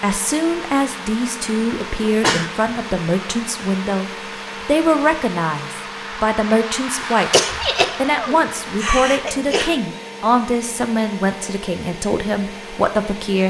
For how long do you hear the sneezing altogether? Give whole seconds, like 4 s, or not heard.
3 s.